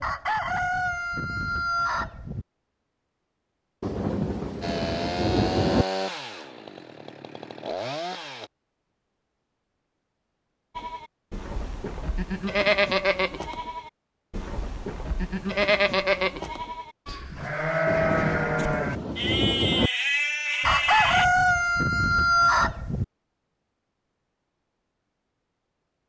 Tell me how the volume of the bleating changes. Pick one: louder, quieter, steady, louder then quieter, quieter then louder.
quieter then louder.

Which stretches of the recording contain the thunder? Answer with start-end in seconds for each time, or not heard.
3.8-5.8, 17.9-19.9.